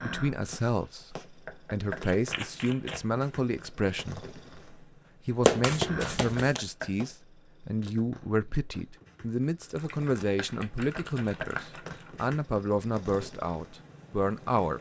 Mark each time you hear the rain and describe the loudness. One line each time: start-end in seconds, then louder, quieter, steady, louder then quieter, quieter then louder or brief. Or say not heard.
not heard.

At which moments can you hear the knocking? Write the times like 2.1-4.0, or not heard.
1.4-2.1, 6.4-7.0, 10.9-11.6.